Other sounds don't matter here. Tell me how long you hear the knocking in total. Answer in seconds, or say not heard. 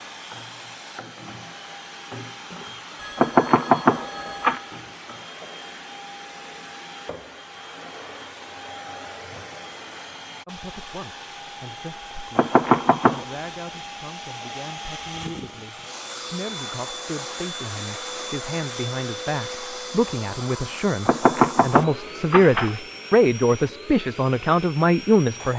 4 s.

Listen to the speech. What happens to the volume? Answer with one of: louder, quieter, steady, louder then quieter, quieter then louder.
louder.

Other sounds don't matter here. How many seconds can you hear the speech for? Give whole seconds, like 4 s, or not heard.
15 s.